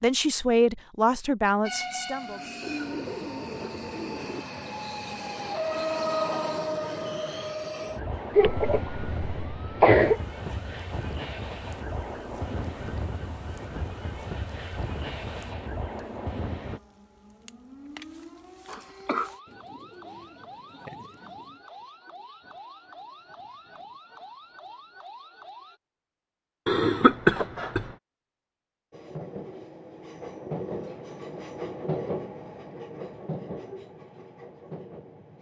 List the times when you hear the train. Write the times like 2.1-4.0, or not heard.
1.6-16.8, 28.9-35.3.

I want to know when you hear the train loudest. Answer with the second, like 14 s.
6 s.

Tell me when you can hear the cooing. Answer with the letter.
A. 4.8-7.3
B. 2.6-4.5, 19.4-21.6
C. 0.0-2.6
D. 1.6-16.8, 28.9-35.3
B.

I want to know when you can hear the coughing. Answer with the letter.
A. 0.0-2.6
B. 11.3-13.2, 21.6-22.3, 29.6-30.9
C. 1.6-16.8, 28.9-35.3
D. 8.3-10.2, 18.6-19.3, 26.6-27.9
D.